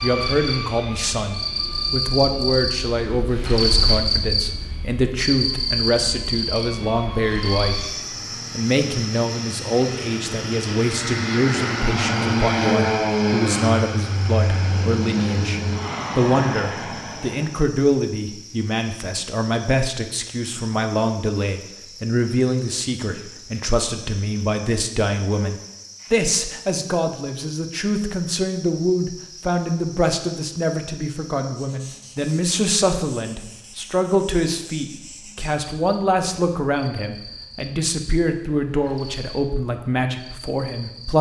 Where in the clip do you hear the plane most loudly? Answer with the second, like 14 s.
13 s.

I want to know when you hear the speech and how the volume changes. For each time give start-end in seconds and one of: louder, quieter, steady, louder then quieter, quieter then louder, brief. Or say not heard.
0.0-7.8 steady
8.6-41.1 steady.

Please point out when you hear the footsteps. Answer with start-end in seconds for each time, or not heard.
not heard.